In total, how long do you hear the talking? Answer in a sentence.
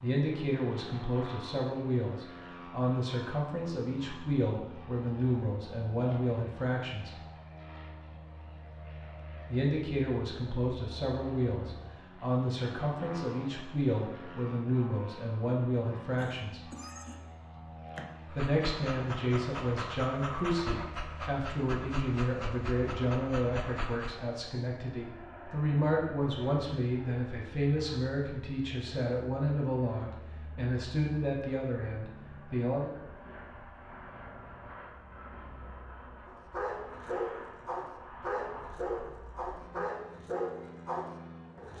The talking can be heard for 29 seconds in total.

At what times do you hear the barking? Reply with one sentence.
The barking can be heard from 18.2 to 24.2 s and from 36.3 to 41.7 s.